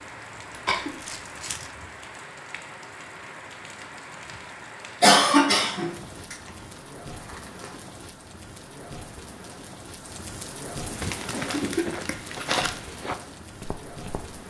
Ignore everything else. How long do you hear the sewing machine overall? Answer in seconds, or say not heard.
not heard.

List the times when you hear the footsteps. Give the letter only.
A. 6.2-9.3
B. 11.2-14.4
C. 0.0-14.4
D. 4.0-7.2
B.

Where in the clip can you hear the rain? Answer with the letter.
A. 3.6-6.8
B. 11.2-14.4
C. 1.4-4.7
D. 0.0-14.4
D.